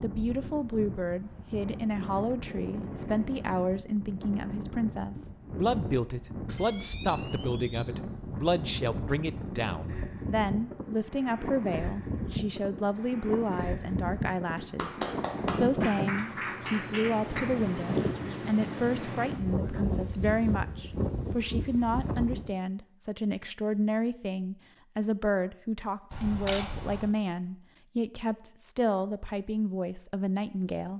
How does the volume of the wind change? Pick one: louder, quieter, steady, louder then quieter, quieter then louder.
louder.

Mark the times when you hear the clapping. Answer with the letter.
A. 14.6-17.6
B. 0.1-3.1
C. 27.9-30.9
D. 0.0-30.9
A.